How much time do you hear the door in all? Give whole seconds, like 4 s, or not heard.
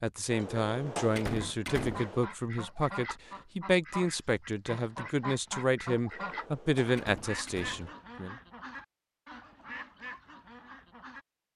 4 s.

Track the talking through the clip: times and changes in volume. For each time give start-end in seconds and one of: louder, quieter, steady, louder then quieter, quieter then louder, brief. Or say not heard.
0.0-8.3 steady.